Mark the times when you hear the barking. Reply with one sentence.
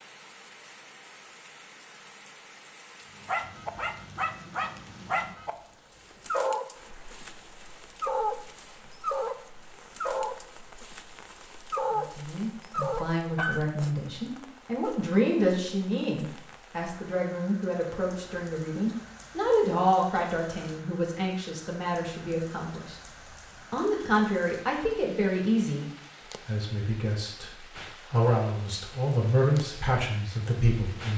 The barking can be heard from 3.1 to 13.7 s.